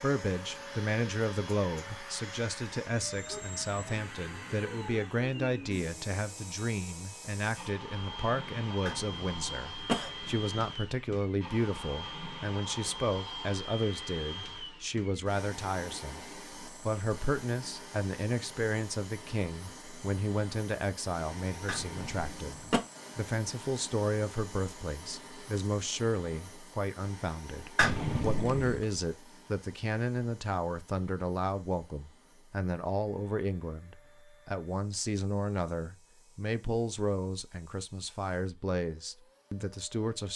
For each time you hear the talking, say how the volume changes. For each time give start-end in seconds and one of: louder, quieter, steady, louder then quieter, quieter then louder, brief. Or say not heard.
0.0-40.3 steady.